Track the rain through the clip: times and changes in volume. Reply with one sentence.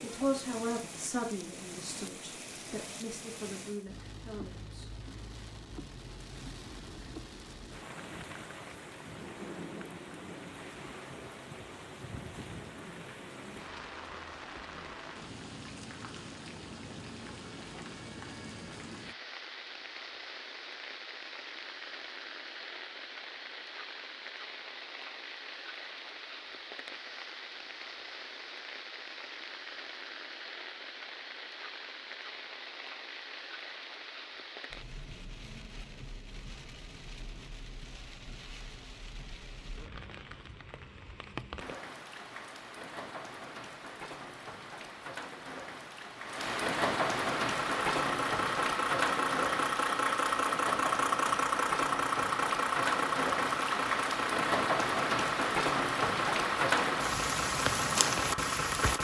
The rain can be heard from 0.0 to 59.0 s, getting louder.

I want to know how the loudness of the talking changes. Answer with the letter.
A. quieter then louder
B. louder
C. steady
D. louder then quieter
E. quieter
E.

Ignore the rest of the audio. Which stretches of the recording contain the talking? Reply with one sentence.
The talking can be heard from 0.0 to 4.9 s.